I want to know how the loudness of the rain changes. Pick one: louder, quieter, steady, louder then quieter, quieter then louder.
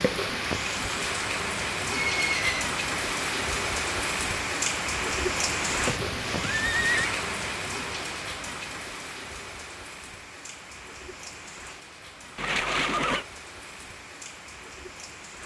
quieter.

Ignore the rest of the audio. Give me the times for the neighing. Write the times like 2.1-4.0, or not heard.
2.0-2.6, 5.7-7.2, 12.3-13.2.